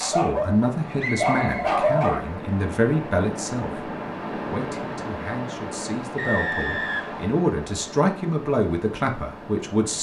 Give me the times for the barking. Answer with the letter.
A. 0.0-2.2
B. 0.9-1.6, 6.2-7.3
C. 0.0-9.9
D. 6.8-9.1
A.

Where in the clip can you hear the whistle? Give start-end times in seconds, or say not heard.
0.9-1.6, 6.2-7.3.